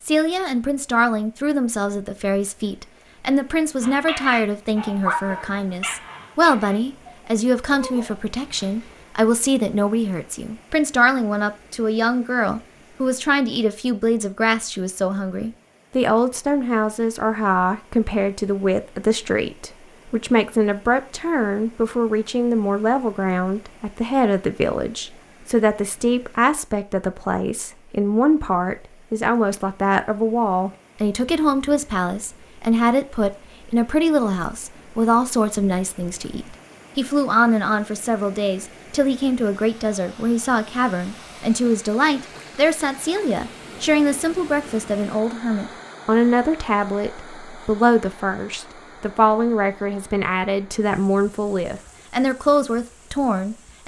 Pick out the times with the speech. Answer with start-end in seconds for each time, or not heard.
0.0-53.8.